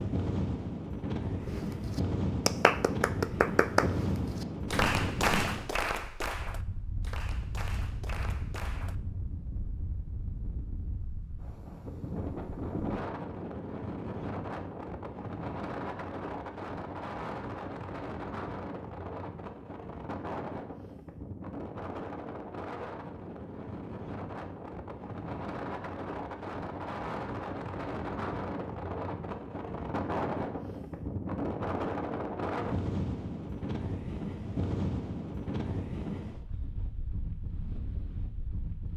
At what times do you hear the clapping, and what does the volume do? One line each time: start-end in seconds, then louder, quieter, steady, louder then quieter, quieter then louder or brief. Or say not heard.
1.4-8.9 quieter.